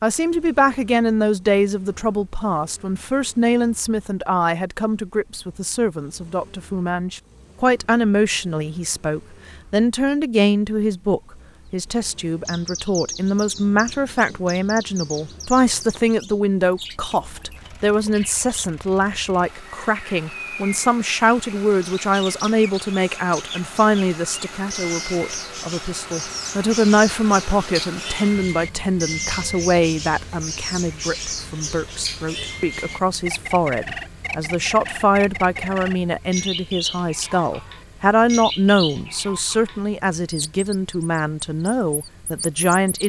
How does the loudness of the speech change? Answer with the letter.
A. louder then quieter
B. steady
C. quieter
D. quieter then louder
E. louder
B.